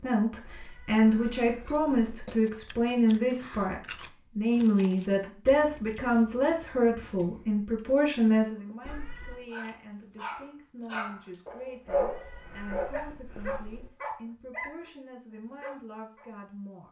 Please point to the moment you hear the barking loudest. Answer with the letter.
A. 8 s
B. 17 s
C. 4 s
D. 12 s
D.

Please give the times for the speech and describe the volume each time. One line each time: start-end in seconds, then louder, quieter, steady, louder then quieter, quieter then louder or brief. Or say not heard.
0.0-16.8 quieter.